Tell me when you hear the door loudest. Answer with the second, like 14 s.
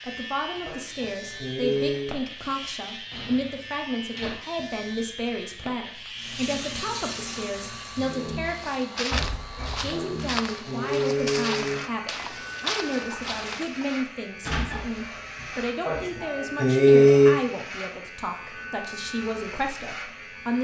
15 s.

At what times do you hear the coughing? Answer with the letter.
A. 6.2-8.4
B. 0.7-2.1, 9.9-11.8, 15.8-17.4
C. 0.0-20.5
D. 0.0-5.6
B.